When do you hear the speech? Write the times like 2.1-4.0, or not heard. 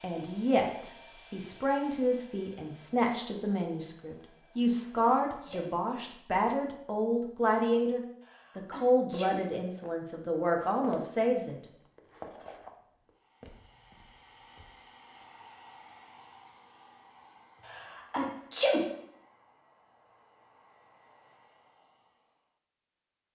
0.0-11.6.